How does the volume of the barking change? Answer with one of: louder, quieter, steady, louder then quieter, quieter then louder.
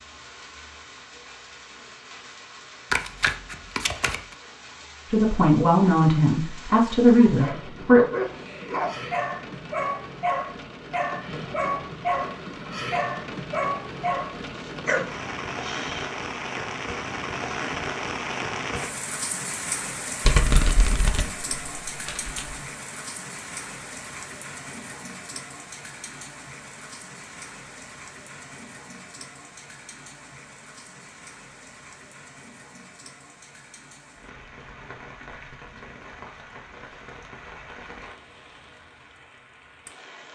steady.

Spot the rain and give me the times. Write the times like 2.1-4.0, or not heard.
0.0-40.2.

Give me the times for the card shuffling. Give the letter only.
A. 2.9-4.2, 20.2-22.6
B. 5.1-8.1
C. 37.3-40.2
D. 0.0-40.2
A.